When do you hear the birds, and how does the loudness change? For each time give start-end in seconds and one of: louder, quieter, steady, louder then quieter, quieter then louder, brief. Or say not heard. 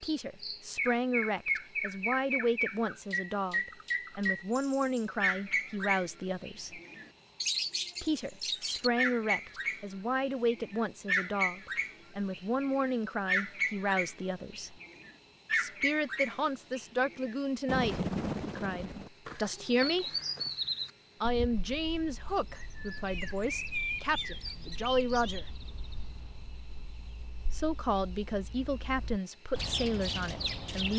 0.0-30.9 quieter.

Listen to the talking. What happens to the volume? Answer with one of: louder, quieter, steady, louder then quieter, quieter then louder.
steady.